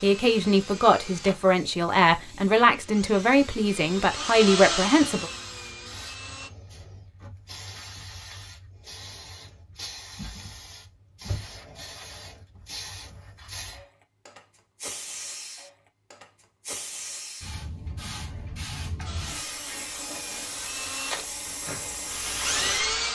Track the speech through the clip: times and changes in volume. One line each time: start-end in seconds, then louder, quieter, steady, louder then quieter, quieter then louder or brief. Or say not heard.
0.0-5.3 steady.